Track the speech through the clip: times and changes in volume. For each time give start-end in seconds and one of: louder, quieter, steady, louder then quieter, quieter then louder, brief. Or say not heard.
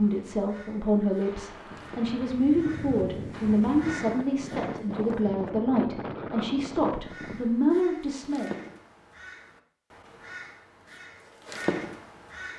0.0-8.7 steady.